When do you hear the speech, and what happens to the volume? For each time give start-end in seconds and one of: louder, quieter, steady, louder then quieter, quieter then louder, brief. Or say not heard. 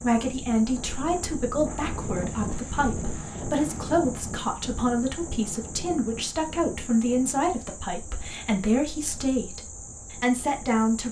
0.0-11.0 steady.